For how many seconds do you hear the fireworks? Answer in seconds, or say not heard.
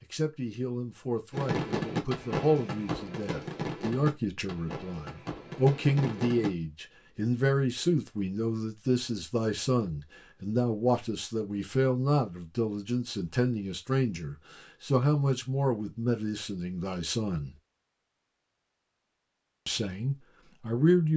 5 s.